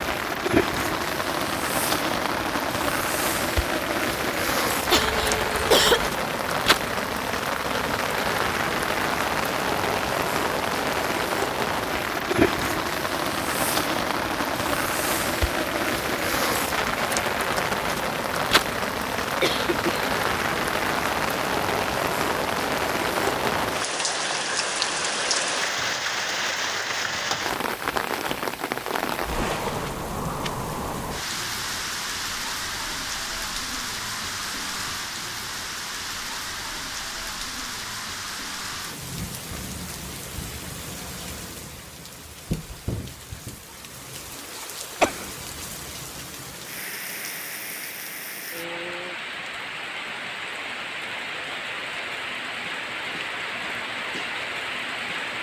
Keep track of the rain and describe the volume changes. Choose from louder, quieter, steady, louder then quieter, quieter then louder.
quieter.